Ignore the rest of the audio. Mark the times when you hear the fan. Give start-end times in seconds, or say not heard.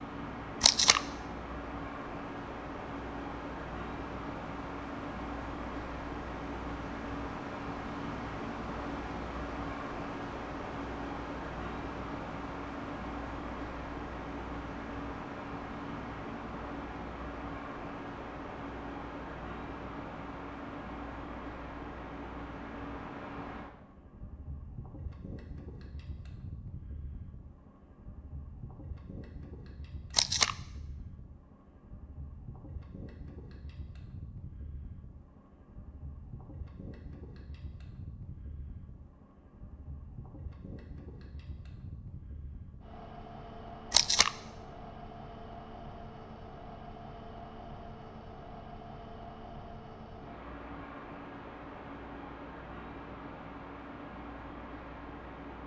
0.0-55.6.